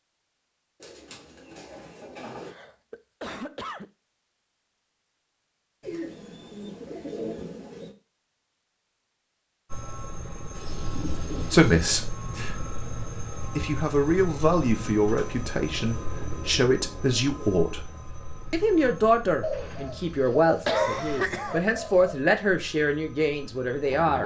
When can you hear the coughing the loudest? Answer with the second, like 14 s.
21 s.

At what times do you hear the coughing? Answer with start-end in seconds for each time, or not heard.
2.4-3.9, 20.6-21.6.